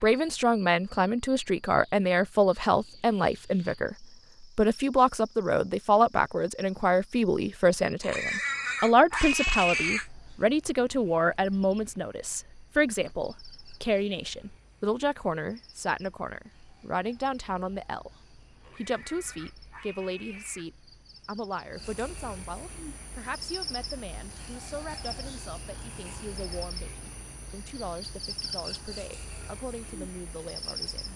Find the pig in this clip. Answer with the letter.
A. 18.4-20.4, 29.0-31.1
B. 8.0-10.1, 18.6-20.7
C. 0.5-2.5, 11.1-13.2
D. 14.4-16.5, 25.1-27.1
B.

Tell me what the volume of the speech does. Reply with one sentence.
The volume of the speech goes down.